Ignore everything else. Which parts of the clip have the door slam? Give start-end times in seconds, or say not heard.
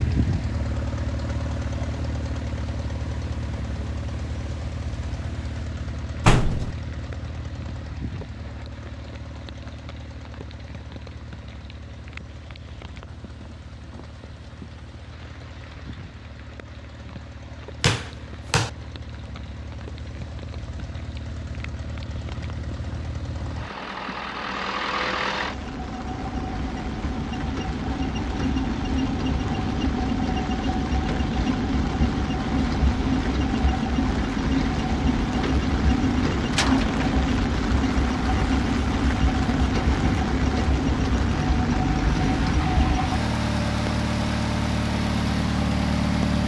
6.2-6.8, 17.8-18.7, 36.5-37.0.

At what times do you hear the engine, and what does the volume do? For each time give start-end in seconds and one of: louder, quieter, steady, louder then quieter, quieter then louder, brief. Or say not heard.
0.0-46.4 quieter then louder.